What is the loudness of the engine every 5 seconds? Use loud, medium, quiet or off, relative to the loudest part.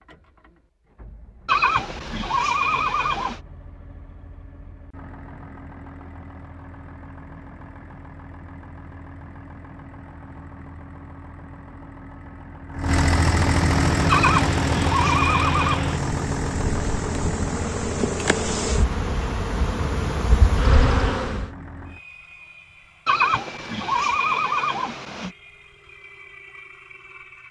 quiet, quiet, loud, loud, quiet, quiet.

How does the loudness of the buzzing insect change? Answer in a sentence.
The volume of the buzzing insect goes up.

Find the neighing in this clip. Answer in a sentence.
The neighing can be heard from 1.4 to 3.4 s, from 14.1 to 15.8 s and from 23.1 to 25.3 s.